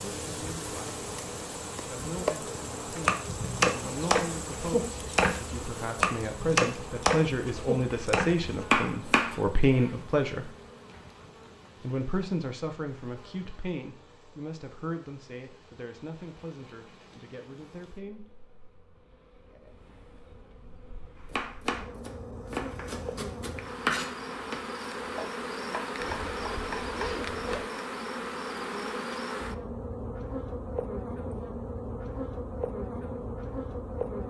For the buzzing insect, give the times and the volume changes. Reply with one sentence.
You can hear the buzzing insect from 0.0 to 34.2 s, getting quieter then louder.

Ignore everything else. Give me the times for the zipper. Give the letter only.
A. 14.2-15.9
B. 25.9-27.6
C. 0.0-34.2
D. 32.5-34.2
B.